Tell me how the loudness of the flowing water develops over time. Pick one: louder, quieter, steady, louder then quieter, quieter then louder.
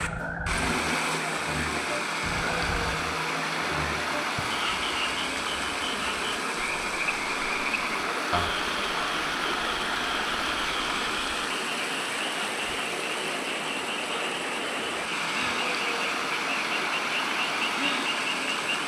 steady.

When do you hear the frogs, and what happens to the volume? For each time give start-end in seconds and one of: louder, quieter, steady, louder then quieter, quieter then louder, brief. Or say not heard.
0.0-18.8 steady.